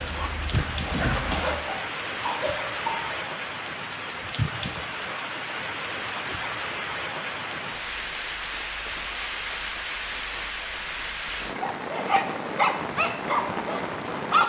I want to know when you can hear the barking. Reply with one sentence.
You can hear the barking from 0.0 to 1.6 s and from 11.6 to 14.4 s.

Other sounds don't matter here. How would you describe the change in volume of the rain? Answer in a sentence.
The loudness of the rain stays about the same.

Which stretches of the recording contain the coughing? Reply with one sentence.
You can hear the coughing from 1.3 to 3.2 s.